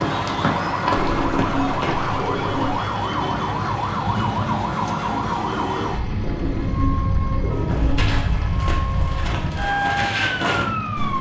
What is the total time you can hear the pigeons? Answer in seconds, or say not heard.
4 s.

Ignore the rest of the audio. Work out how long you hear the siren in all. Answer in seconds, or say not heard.
11 s.